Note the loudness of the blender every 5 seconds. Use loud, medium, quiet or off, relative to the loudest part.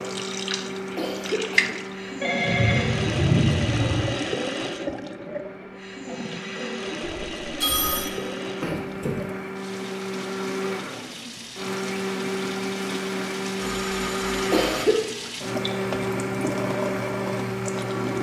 medium, medium, loud, loud.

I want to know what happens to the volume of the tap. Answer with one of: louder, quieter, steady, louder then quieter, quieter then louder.
quieter then louder.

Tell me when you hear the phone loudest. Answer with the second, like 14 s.
3 s.